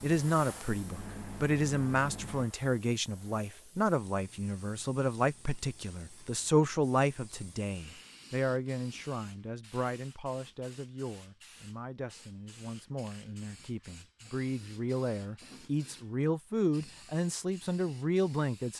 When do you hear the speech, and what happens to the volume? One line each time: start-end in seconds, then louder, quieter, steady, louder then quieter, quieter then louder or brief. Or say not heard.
0.0-18.7 quieter then louder.